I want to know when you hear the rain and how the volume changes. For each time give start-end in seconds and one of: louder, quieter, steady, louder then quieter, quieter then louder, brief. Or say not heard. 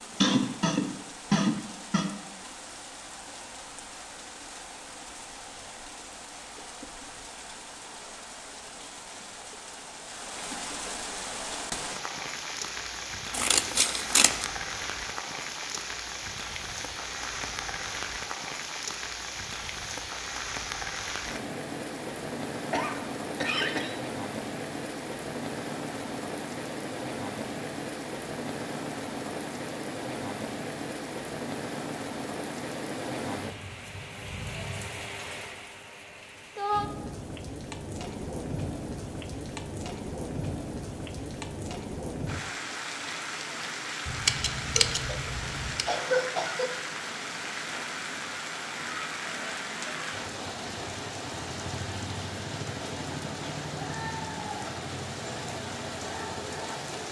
0.0-57.0 louder.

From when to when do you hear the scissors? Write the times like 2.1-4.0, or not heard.
13.3-14.4, 44.0-45.9.